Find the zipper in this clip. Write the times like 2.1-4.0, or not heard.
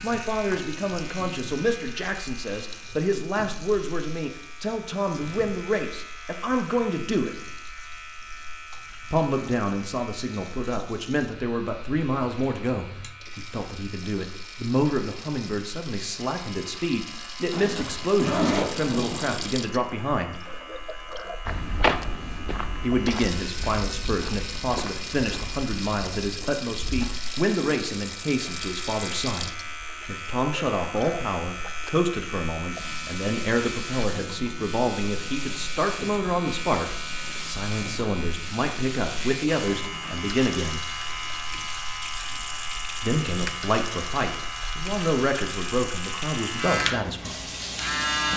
17.5-19.4.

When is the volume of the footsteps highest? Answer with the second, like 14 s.
22 s.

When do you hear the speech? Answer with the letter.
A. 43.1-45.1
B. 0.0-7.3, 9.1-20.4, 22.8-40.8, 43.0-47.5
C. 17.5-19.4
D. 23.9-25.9
B.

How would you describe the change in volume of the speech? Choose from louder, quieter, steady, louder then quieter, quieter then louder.
steady.